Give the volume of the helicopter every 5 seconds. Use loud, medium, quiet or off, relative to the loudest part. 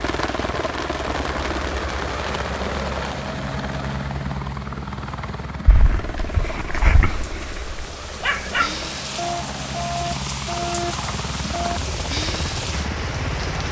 loud, medium, loud.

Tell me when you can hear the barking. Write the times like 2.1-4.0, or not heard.
5.7-11.8.